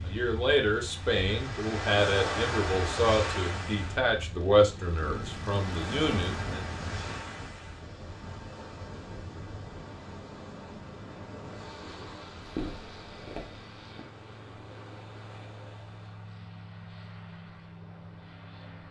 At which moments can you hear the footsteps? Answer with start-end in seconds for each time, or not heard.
12.4-14.1.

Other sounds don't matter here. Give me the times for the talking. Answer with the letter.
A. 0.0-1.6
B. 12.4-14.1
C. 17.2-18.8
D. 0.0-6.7
D.